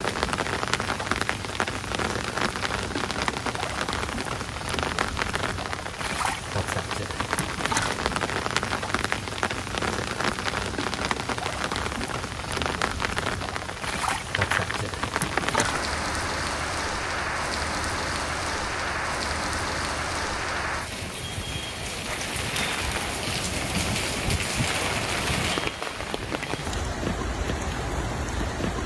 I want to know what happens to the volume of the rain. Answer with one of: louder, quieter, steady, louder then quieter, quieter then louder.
steady.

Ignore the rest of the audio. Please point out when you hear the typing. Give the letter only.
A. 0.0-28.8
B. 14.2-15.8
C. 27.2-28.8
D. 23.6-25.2
B.